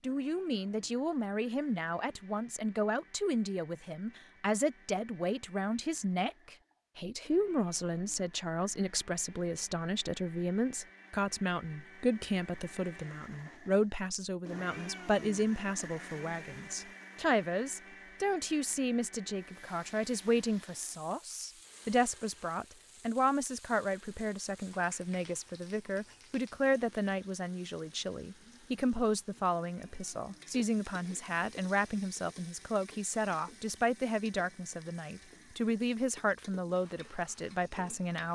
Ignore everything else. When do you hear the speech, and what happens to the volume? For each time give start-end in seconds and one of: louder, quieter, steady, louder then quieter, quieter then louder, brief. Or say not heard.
0.0-38.3 steady.